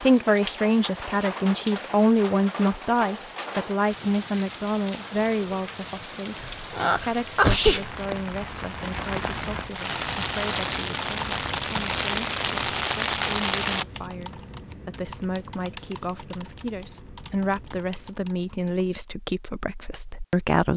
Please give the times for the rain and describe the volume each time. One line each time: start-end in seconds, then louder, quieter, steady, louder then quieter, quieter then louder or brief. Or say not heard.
0.0-13.8 louder.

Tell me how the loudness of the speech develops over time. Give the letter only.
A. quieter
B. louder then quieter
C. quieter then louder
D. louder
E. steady
C.